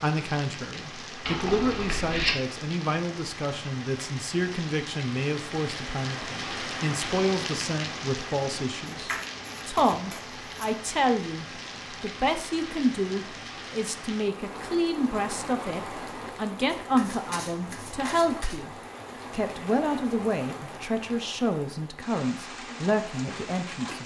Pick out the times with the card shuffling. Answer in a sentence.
The card shuffling can be heard from 1.2 to 2.4 s, from 8.9 to 10.7 s and from 16.8 to 18.6 s.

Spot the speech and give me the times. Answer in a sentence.
You can hear the speech from 0.0 to 24.0 s.